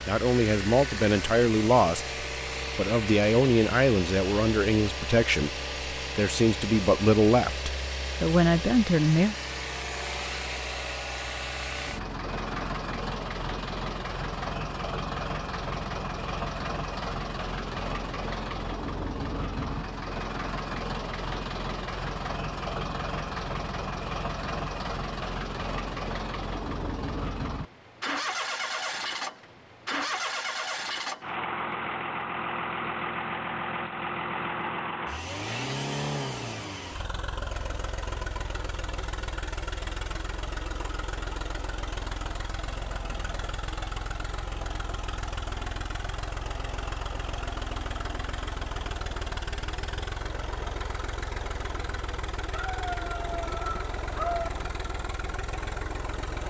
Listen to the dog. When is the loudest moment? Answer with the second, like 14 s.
54 s.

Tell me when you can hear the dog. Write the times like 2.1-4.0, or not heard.
52.5-54.5.